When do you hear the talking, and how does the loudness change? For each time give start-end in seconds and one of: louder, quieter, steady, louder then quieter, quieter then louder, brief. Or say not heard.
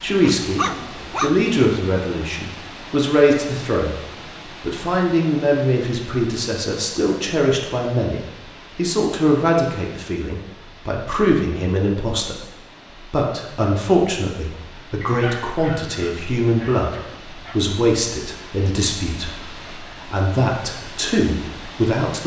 0.0-22.2 steady.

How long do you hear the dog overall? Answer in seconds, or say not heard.
4 s.